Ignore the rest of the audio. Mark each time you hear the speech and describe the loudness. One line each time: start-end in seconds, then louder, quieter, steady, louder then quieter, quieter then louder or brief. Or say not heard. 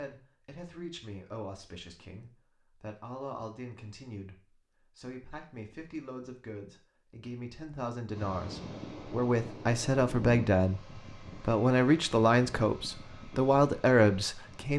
0.0-14.7 louder.